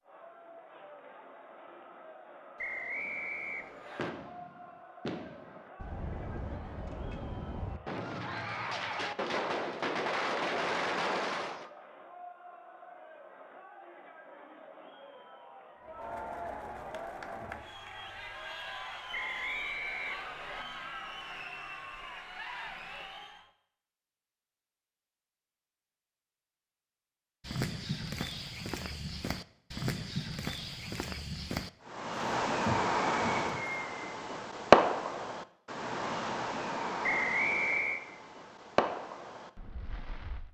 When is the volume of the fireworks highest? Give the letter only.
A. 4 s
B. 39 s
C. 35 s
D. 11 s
C.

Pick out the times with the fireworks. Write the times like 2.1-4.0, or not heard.
3.0-11.7, 31.9-40.5.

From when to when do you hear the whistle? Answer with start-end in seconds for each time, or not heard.
2.5-4.1, 19.1-20.6, 37.0-38.0.